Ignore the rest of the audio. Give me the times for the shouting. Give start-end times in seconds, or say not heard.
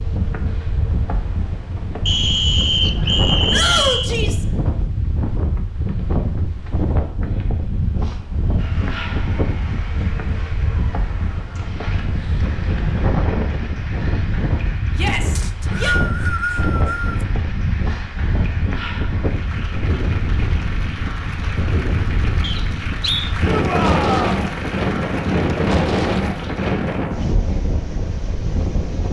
3.5-4.5, 14.9-16.0, 23.4-24.4.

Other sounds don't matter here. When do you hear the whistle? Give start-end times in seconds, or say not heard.
2.0-4.1, 15.3-17.2, 22.4-23.4.